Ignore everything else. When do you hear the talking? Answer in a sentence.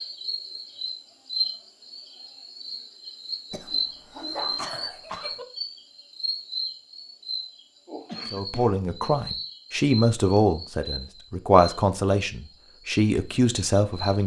The talking can be heard from 8.3 to 14.2 s.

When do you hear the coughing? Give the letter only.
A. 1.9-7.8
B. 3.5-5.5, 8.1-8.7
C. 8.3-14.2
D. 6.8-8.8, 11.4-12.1
B.